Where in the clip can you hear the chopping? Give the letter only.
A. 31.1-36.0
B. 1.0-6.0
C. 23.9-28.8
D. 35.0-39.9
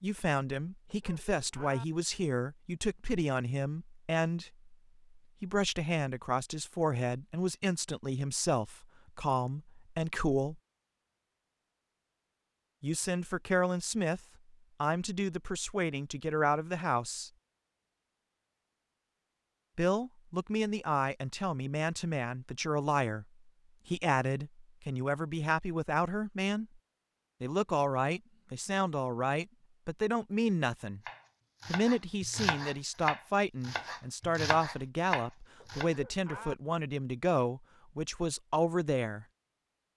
A.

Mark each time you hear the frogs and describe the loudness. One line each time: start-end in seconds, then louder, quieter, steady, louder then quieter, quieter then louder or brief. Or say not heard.
not heard.